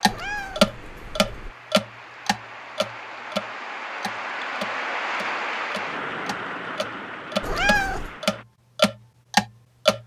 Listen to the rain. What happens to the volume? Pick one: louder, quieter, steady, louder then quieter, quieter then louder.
louder then quieter.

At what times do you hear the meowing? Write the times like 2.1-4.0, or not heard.
0.1-1.6, 7.4-8.1.